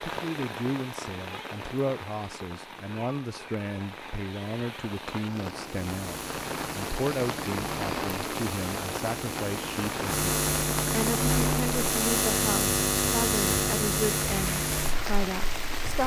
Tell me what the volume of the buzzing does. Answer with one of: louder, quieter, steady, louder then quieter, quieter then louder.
louder.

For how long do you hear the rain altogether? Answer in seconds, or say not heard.
16 s.